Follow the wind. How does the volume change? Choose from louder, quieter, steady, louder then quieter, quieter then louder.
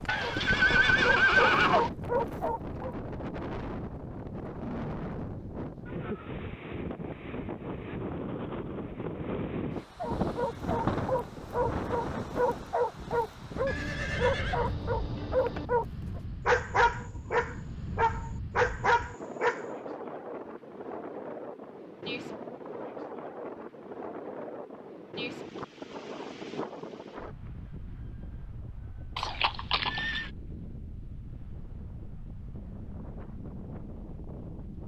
quieter.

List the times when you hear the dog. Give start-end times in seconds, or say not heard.
0.0-3.0, 10.0-19.6.